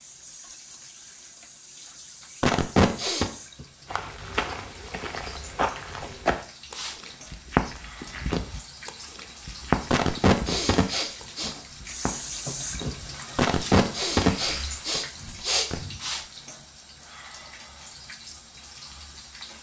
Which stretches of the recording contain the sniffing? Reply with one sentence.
You can hear the sniffing from 2.4 to 3.3 s, from 9.9 to 11.6 s and from 13.3 to 15.9 s.